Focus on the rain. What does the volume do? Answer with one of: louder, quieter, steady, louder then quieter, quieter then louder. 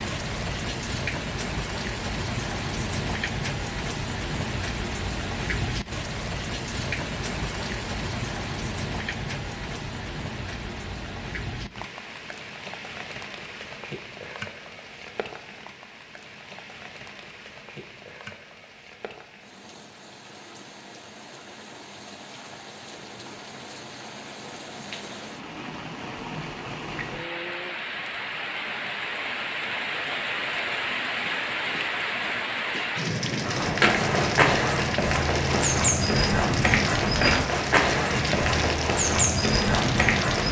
quieter then louder.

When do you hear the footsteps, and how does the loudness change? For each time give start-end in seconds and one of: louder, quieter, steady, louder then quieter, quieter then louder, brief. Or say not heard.
33.4-40.4 steady.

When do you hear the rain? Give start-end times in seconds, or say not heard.
0.0-40.4.